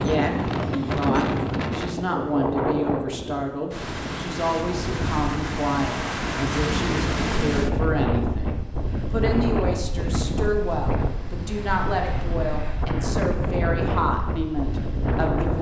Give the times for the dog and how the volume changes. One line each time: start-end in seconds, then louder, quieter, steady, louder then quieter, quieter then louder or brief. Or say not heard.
not heard.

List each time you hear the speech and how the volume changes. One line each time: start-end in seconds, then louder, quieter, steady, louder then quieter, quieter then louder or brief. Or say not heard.
0.0-15.5 steady.